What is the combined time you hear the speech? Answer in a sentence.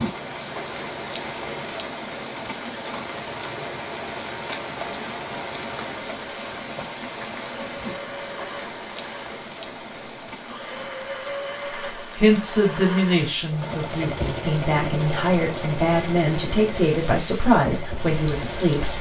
You can hear the speech for 7 seconds altogether.